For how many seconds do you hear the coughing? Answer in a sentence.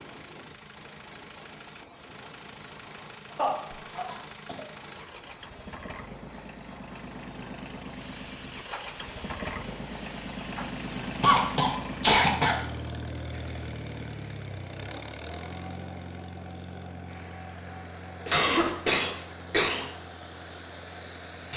The coughing can be heard for 4 seconds in total.